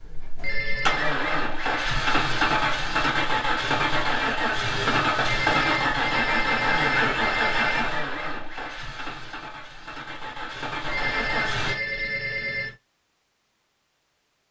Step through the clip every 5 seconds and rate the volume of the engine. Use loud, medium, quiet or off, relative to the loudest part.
loud, loud, medium.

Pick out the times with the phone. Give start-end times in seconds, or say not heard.
0.3-1.1, 5.2-8.0, 10.8-12.8.